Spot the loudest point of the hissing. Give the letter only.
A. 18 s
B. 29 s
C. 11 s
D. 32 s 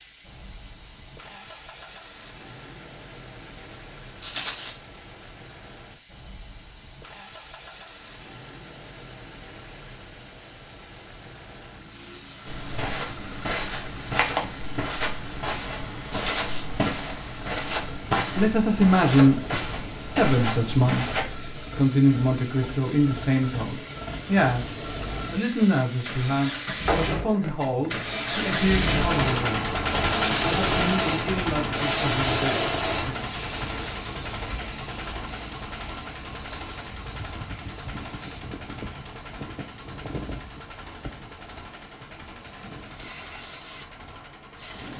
D.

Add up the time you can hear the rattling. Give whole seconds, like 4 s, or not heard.
2 s.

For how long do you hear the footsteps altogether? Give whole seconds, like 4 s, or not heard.
9 s.